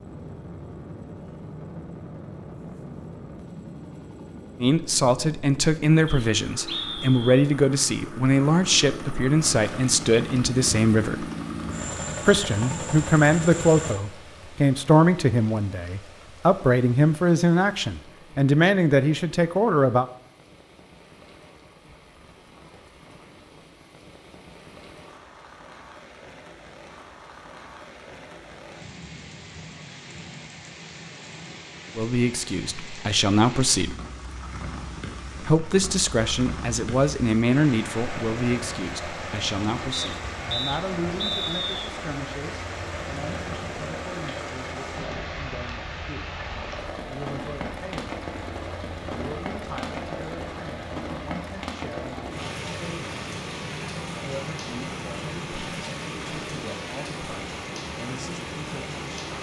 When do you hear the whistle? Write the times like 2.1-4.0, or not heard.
6.0-7.5, 39.9-41.8.